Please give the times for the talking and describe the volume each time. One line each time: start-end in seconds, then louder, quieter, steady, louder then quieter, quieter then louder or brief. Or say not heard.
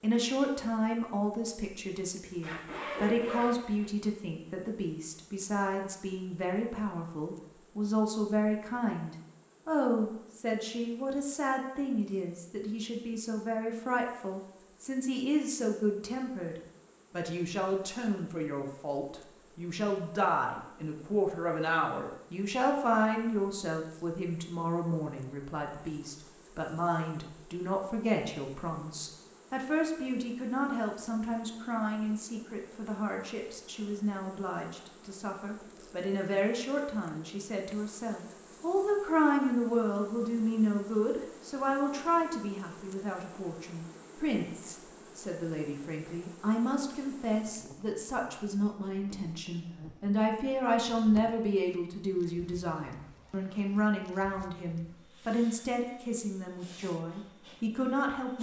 0.0-58.3 steady.